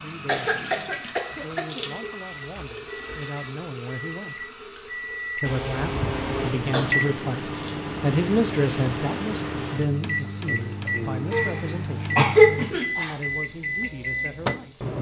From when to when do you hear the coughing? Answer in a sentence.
The coughing can be heard from 0.2 to 1.9 s, from 5.5 to 7.0 s and from 11.3 to 13.2 s.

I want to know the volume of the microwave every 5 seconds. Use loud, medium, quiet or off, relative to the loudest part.
medium, loud, loud.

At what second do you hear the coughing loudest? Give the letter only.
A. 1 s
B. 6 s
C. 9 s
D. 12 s
D.